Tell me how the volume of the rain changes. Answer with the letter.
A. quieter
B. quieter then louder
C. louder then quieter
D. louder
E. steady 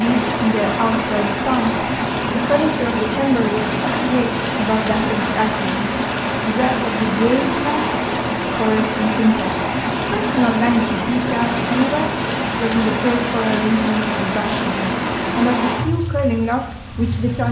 E.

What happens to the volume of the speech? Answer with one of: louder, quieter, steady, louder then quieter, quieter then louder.
steady.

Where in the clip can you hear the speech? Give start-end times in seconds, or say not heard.
0.0-17.4.